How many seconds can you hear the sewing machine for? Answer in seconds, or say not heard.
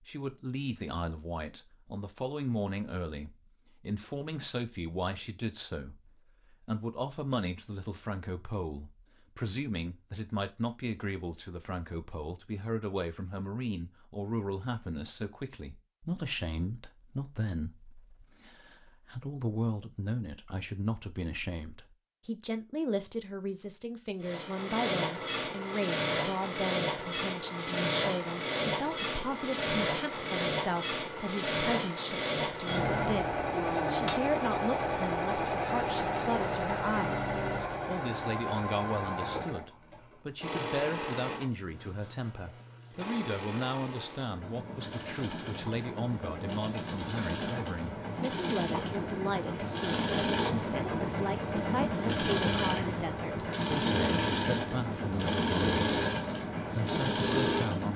34 s.